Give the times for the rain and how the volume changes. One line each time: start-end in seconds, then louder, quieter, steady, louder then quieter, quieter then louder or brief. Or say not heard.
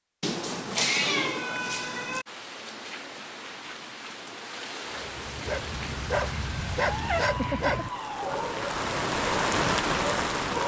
2.2-10.6 louder.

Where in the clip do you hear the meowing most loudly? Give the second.
1 s.